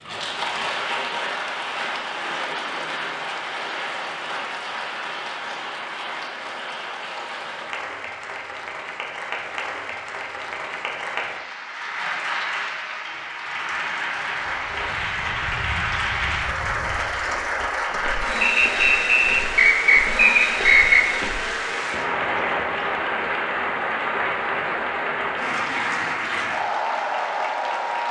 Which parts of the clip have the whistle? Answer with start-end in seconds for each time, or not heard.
18.4-21.1.